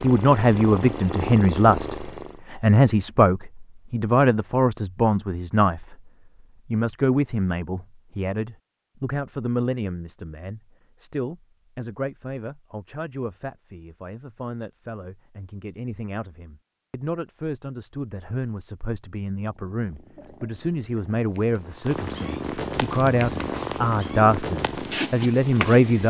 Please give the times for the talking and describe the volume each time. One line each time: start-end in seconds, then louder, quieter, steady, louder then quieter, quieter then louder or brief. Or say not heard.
0.0-26.0 quieter then louder.